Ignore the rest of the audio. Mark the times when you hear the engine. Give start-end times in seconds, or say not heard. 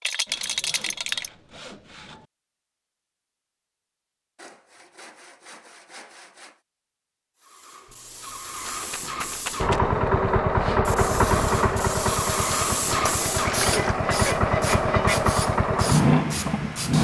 9.6-16.9.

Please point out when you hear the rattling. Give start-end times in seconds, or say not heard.
0.0-1.3, 7.8-9.8, 12.8-13.8.